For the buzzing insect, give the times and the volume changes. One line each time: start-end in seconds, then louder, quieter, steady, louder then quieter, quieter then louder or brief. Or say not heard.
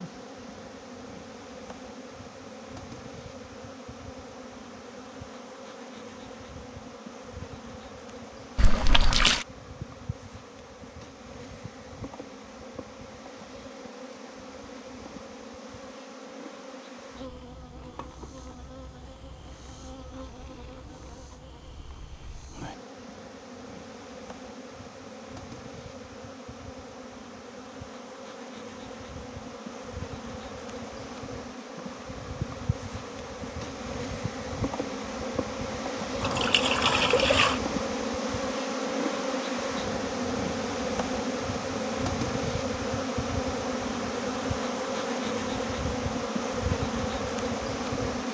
0.0-48.2 louder.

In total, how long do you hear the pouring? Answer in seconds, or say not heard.
2 s.